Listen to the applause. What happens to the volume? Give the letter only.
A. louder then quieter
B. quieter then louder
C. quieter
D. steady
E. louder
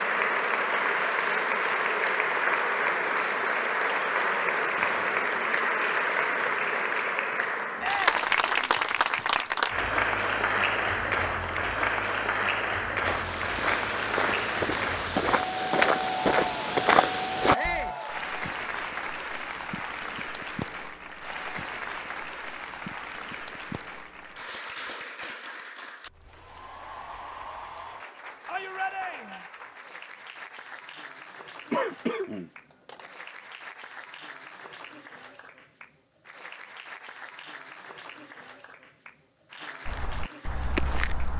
C.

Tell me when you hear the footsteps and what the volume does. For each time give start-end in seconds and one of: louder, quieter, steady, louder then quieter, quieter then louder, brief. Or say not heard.
13.0-17.9 louder
39.9-41.3 brief.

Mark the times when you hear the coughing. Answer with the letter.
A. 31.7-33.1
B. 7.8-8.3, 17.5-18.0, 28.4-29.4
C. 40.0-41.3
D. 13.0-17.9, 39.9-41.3
A.